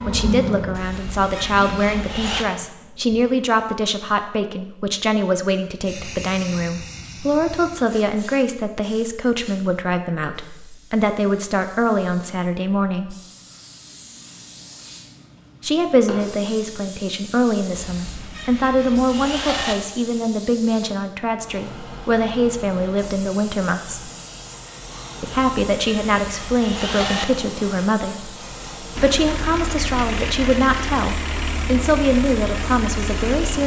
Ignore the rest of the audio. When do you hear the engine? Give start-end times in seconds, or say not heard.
0.0-3.2, 28.9-33.6.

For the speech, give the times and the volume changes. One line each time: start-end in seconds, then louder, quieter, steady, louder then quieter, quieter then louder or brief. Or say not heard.
0.0-13.2 steady
15.6-24.1 steady
25.2-33.6 steady.